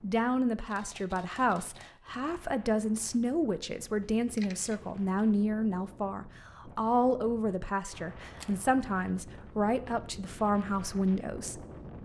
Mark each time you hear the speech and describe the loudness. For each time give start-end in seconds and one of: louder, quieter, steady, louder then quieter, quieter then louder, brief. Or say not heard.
0.0-11.6 steady.